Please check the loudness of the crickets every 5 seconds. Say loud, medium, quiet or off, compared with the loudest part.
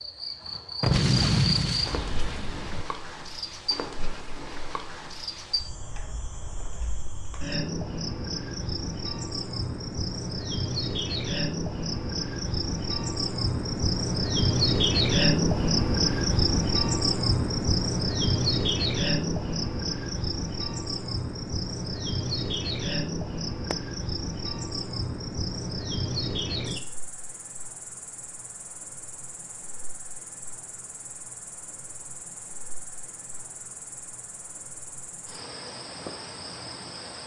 medium, medium, loud, loud, medium, medium, quiet, quiet.